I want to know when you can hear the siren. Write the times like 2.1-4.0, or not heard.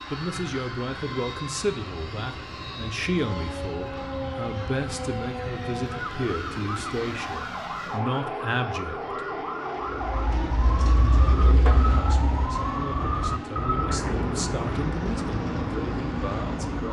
3.1-16.8.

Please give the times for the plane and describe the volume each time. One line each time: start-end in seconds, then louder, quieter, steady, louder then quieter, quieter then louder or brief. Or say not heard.
0.0-16.8 steady.